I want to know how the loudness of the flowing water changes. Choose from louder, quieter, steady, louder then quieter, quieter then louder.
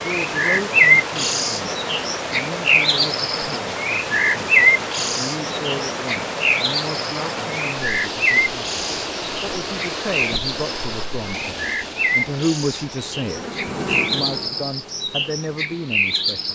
quieter.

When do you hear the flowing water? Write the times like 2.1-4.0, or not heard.
0.0-16.5.